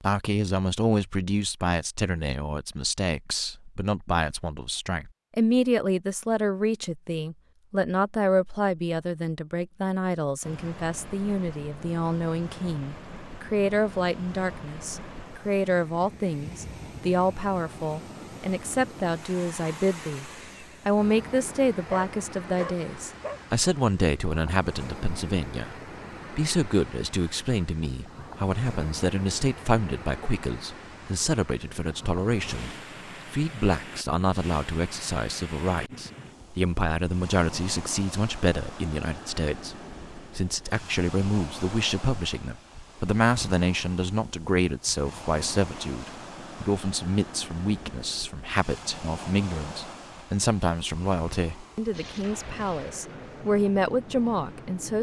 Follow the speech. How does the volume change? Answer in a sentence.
The loudness of the speech stays about the same.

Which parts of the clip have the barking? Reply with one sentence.
The barking can be heard from 21.9 to 23.4 s.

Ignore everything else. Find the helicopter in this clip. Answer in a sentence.
The helicopter can't be heard in this clip.